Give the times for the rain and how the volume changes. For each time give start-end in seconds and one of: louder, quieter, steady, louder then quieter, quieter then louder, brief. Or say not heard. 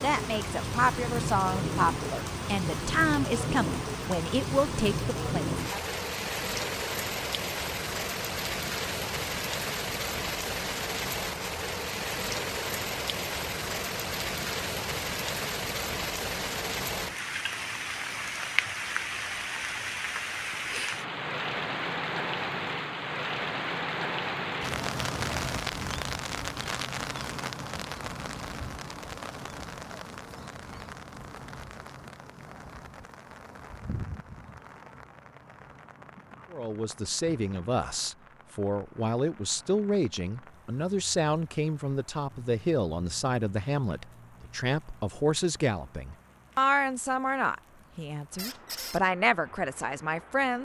0.0-50.5 quieter.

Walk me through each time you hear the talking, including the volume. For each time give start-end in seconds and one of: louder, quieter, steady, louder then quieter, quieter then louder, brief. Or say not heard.
0.0-5.8 steady
36.5-50.5 steady.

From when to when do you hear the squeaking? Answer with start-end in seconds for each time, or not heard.
48.4-49.0.